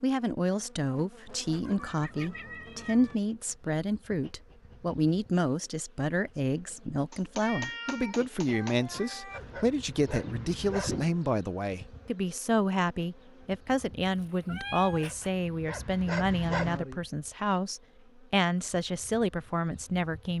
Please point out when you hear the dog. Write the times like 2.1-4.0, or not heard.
9.3-10.9, 14.9-16.8.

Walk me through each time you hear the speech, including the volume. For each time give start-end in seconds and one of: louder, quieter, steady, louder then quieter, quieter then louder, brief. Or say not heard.
0.0-20.3 steady.